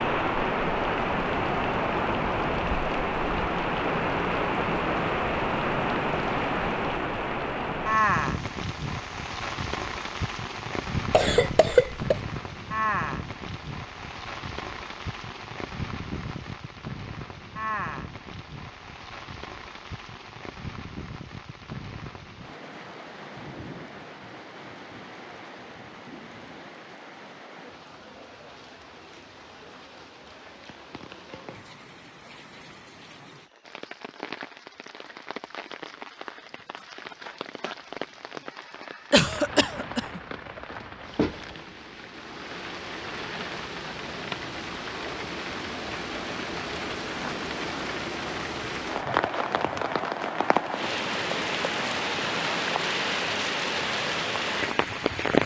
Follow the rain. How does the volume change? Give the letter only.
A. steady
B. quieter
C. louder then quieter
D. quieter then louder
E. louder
D.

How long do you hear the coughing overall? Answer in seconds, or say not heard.
2 s.